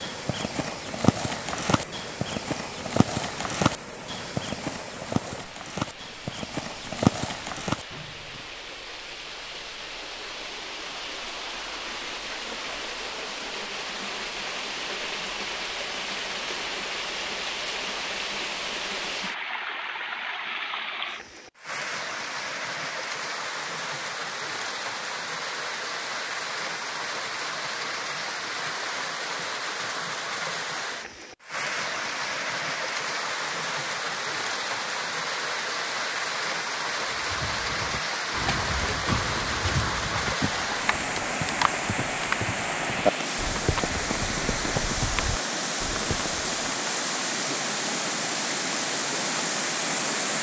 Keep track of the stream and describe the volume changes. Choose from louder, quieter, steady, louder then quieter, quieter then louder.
louder.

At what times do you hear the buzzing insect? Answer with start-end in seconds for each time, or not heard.
not heard.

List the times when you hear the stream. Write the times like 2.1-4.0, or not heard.
0.0-50.3.